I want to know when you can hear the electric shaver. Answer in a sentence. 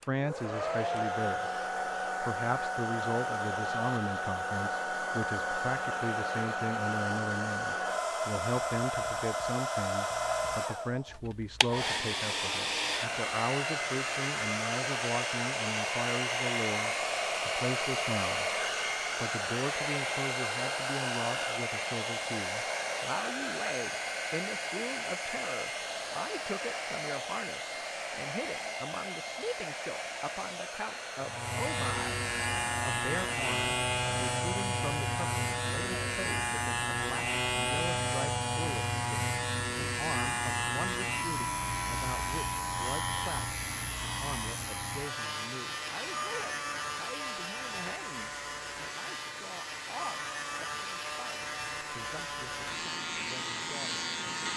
The electric shaver can be heard from 31.2 to 54.5 s.